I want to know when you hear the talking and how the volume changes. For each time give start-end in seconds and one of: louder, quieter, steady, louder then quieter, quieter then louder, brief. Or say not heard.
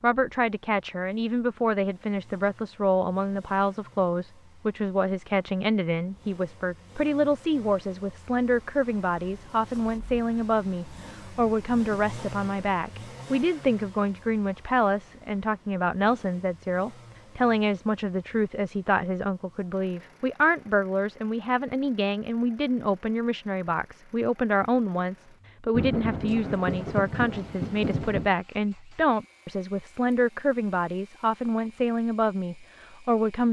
0.0-33.4 steady.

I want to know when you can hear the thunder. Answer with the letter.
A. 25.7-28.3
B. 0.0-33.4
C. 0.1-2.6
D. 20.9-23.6
A.